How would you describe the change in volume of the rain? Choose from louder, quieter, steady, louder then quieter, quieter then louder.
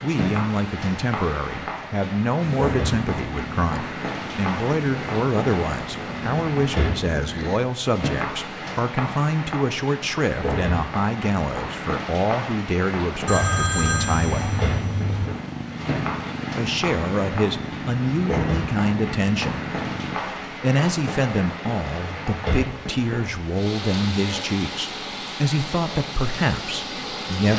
steady.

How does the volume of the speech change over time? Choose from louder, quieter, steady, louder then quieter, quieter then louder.
steady.